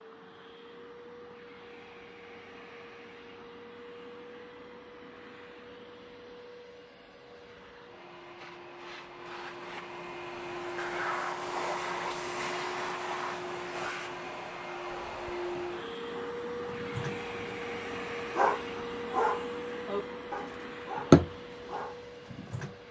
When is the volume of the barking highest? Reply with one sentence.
The volume of the barking peaks at 21 seconds.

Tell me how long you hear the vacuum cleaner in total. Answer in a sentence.
You can hear the vacuum cleaner for 23 seconds altogether.